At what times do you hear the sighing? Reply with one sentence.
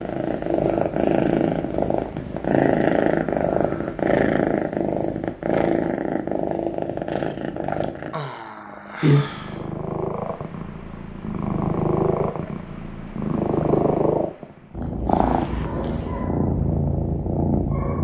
You can hear the sighing from 7.8 to 9.8 s.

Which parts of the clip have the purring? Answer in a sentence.
The purring can be heard from 0.0 to 17.9 s.